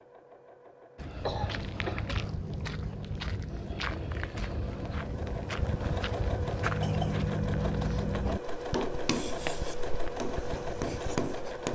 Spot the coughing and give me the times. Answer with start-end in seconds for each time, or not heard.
1.2-2.2, 6.7-7.2.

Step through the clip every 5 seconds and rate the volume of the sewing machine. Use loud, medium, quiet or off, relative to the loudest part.
quiet, loud, loud.